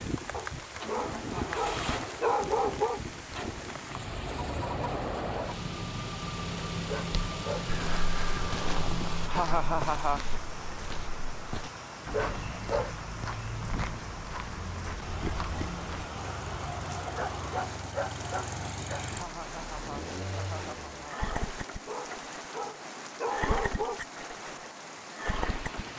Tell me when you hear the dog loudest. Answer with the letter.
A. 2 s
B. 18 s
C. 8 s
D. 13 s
A.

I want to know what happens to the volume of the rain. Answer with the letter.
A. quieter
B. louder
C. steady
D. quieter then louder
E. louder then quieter
C.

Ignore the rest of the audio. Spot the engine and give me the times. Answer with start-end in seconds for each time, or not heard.
0.0-9.3, 16.1-25.9.